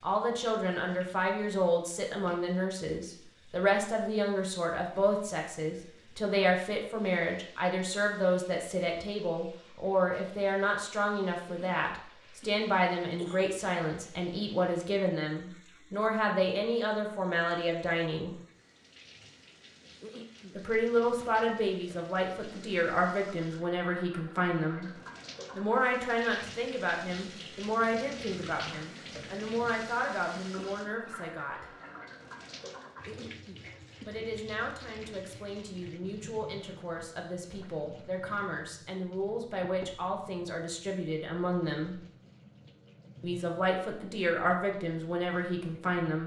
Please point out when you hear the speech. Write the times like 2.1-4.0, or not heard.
0.0-18.3, 20.6-24.9, 25.5-31.6, 34.0-42.0, 43.2-46.2.